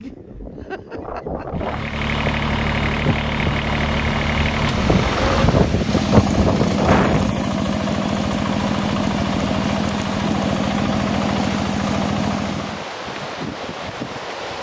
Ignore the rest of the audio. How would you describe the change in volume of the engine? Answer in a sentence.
The volume of the engine stays about the same.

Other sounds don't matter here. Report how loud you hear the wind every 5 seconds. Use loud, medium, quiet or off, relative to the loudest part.
medium, loud, medium.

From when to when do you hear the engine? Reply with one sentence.
The engine can be heard from 1.6 to 12.8 s.